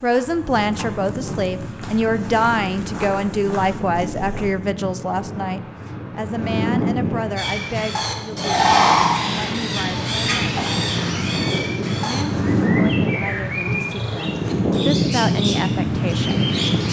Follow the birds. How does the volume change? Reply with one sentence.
The loudness of the birds goes down.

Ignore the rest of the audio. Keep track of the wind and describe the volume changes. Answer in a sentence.
The volume of the wind goes up.